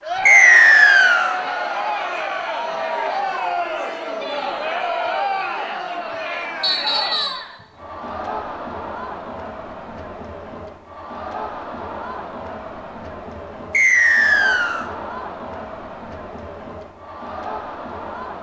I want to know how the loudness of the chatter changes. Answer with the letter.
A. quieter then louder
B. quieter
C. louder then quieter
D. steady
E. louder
B.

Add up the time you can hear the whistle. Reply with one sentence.
The whistle can be heard for 3 seconds in total.